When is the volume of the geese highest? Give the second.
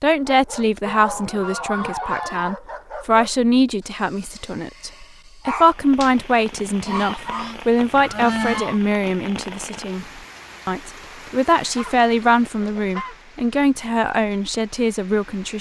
8 s.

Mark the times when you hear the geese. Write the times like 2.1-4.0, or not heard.
0.8-2.5, 6.8-8.8, 11.7-13.2.